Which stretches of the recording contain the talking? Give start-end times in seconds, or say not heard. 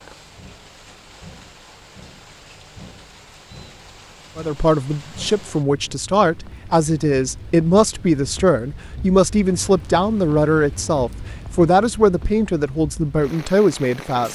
4.3-14.2.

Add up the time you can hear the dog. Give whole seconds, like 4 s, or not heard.
not heard.